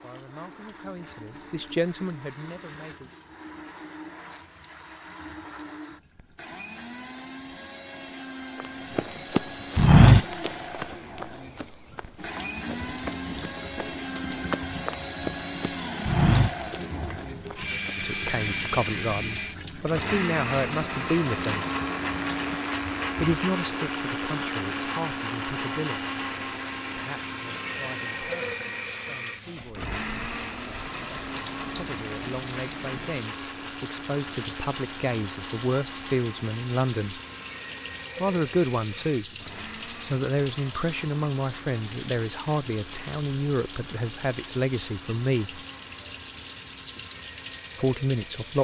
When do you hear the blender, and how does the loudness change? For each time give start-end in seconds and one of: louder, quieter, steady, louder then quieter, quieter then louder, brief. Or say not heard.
0.0-48.5 louder then quieter.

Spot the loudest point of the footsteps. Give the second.
10 s.